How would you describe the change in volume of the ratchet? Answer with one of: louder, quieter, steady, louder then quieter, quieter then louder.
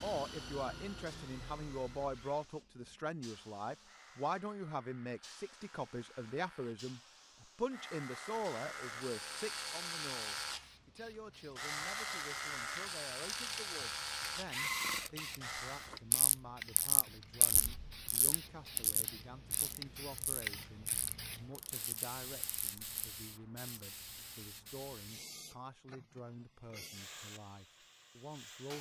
quieter.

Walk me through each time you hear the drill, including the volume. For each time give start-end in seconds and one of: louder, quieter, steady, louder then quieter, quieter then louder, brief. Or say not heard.
0.0-16.0 quieter then louder.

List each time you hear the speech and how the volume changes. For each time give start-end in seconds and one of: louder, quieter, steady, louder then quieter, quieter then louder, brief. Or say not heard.
0.0-28.7 quieter.